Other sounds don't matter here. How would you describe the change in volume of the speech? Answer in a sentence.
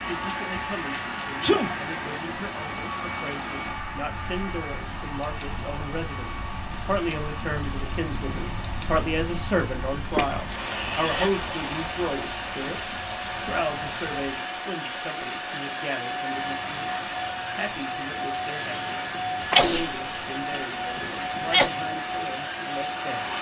The volume of the speech goes up, then down.